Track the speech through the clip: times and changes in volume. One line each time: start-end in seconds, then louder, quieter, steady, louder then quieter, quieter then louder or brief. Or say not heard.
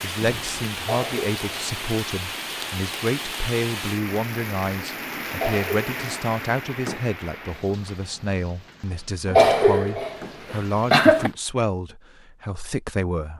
0.0-13.3 steady.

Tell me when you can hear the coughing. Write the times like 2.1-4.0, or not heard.
0.8-1.4, 5.3-6.0, 9.2-11.3.